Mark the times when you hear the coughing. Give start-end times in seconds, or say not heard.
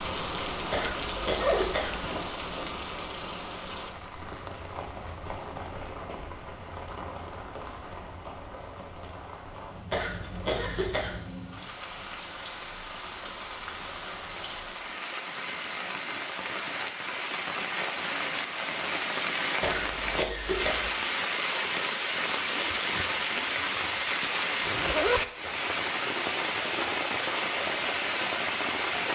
0.7-2.0, 9.9-11.2, 19.6-20.9.